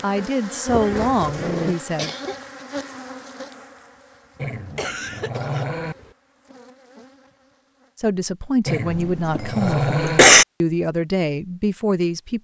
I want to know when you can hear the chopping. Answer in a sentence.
You can't hear the chopping here.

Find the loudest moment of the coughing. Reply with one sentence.
The volume of the coughing peaks at 10 seconds.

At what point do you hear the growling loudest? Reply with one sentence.
The volume of the growling peaks at 10 seconds.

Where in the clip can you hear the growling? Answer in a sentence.
The growling can be heard from 0.7 to 1.8 s, from 4.3 to 6.0 s and from 8.7 to 10.2 s.